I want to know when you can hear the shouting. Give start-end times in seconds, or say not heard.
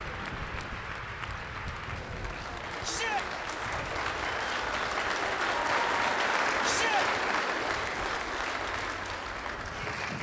2.8-3.2, 6.6-7.0.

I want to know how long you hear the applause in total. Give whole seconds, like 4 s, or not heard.
10 s.